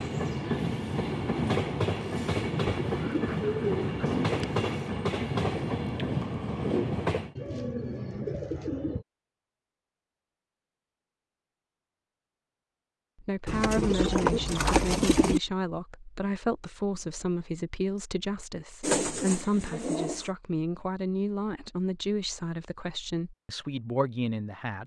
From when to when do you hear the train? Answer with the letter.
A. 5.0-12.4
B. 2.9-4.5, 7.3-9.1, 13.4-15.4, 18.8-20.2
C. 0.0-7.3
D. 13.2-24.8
C.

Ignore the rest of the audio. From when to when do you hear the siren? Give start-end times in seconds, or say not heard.
not heard.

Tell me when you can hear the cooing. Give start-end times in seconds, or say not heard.
2.9-4.5, 7.3-9.1, 13.4-15.4, 18.8-20.2.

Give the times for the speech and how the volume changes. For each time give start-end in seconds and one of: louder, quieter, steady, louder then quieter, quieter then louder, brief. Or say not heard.
13.2-24.8 steady.